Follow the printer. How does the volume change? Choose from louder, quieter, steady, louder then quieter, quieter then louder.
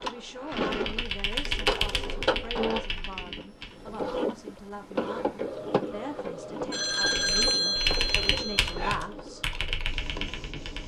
quieter.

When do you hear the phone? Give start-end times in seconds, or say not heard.
6.7-8.9.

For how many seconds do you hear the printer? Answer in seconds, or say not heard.
11 s.